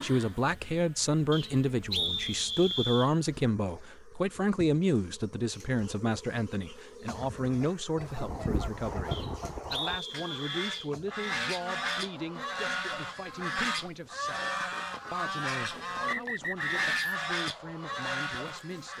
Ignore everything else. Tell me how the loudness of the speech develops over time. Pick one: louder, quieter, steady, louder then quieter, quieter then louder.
quieter.